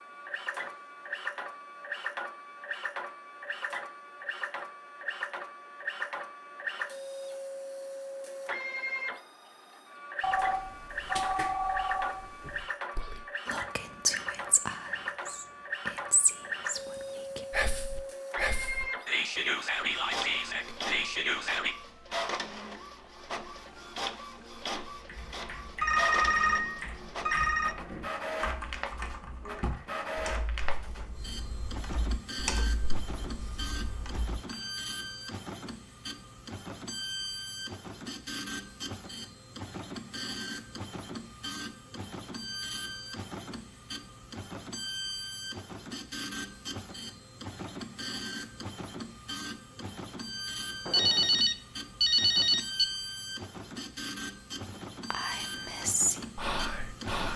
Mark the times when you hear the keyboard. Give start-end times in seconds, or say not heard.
24.9-34.6.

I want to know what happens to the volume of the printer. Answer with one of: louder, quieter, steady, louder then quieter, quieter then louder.
steady.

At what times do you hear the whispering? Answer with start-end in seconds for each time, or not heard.
12.9-21.8, 55.1-57.3.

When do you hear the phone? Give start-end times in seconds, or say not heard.
10.2-12.7, 25.8-27.8, 50.9-52.9.